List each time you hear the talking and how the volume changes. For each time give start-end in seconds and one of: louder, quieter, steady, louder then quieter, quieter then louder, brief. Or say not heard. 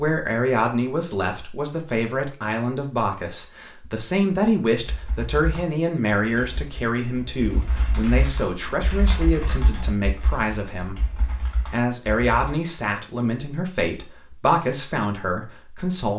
0.0-16.1 steady.